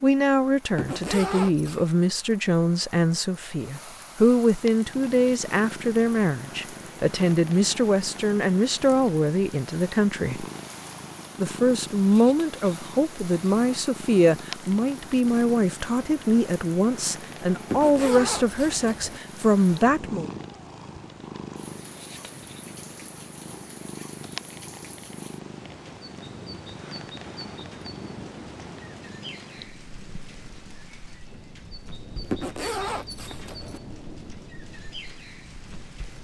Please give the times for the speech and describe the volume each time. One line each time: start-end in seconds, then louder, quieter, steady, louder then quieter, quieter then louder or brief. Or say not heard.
0.0-10.4 steady
11.4-20.3 steady.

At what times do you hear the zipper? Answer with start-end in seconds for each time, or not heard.
0.8-1.9, 17.7-19.2, 32.3-33.8.